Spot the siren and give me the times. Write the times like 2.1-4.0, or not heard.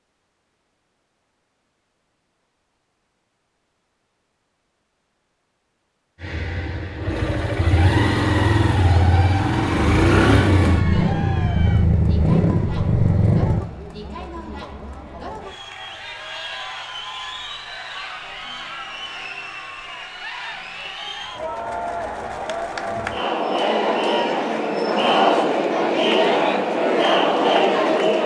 not heard.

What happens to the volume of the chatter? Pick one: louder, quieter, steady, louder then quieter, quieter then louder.
louder.